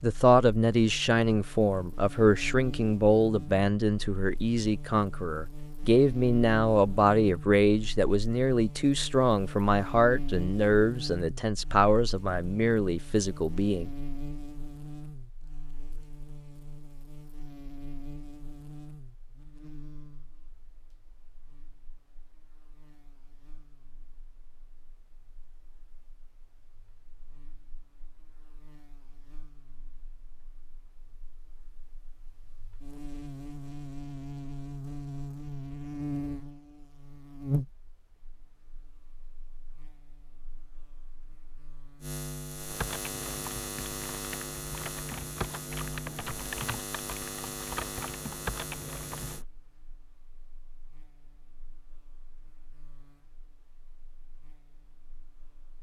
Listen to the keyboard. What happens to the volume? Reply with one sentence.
The volume of the keyboard goes up.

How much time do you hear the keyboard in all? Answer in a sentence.
The keyboard can be heard for 7 seconds in total.